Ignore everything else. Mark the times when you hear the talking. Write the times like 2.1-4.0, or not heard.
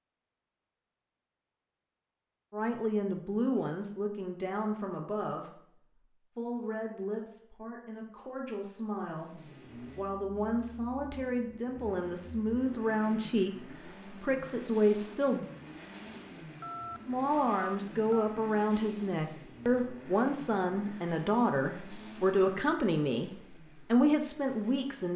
2.5-5.5, 6.3-15.4, 17.1-25.1.